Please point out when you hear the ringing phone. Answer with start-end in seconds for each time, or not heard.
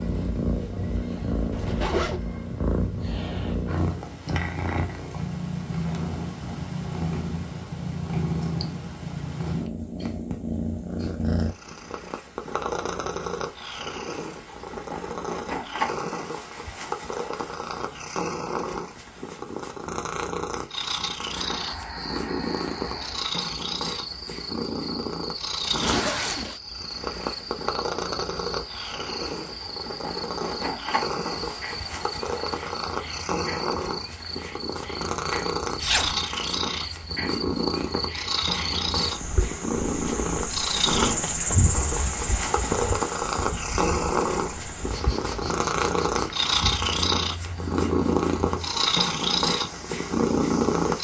not heard.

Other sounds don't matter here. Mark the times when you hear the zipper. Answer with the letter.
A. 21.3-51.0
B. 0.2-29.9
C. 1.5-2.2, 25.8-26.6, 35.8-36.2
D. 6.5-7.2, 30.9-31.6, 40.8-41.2
C.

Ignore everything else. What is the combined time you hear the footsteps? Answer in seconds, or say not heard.
not heard.